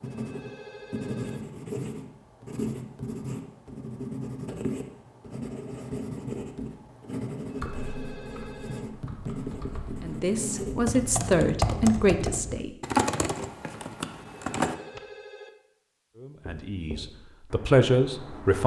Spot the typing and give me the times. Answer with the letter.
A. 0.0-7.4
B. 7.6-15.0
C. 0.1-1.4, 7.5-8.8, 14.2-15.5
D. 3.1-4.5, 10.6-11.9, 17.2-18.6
B.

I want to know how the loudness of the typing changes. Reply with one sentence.
The loudness of the typing goes up, then down.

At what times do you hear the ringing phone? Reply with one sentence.
You can hear the ringing phone from 0.1 to 1.4 s, from 7.5 to 8.8 s and from 14.2 to 15.5 s.